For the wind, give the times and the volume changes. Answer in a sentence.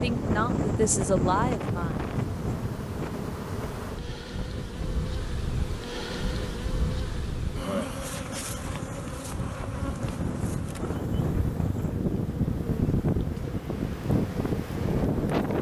The wind can be heard from 0.0 to 15.5 s, getting quieter then louder.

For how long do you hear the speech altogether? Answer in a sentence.
You can hear the speech for 2 seconds altogether.